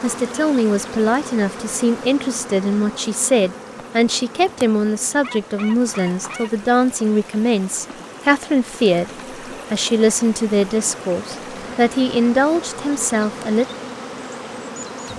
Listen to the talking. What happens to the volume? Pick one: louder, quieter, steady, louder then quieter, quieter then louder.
steady.